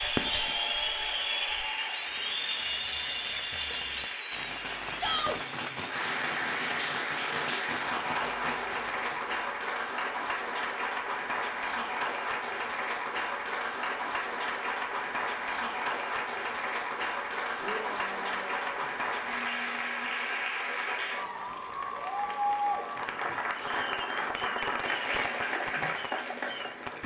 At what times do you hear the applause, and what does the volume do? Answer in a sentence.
You can hear the applause from 0.0 to 27.0 s, at a steady volume.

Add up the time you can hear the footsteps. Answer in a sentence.
You can't hear the footsteps here.